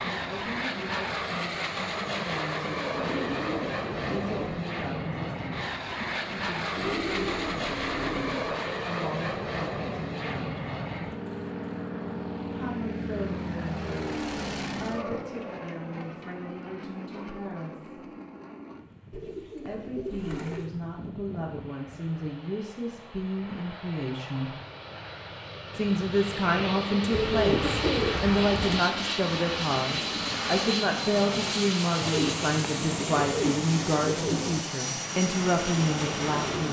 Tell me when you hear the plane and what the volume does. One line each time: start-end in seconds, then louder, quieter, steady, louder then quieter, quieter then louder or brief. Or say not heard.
0.0-36.6 quieter then louder.